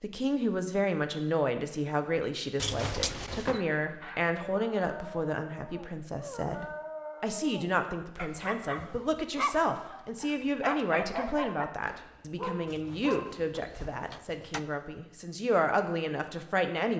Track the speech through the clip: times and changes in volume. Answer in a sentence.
You can hear the speech from 0.0 to 16.9 s, at a steady volume.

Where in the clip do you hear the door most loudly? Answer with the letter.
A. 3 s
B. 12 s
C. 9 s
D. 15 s
A.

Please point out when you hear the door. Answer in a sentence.
The door can be heard from 2.5 to 3.6 s and from 12.7 to 14.7 s.